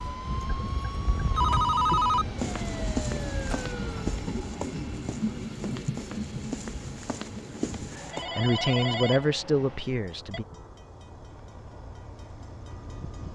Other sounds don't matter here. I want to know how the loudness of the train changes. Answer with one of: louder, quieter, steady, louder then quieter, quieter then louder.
quieter.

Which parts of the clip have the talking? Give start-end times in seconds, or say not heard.
8.0-10.4.